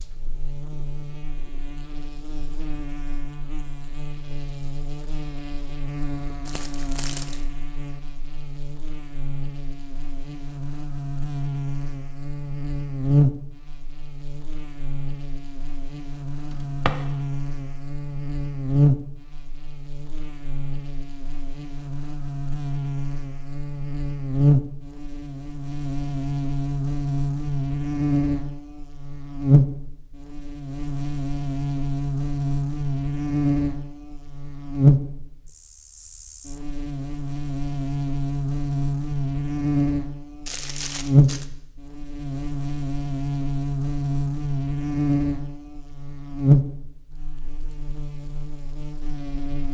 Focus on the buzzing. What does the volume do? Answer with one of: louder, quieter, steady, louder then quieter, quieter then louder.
louder.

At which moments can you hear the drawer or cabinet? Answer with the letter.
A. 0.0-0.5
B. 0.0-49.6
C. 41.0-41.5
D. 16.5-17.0
D.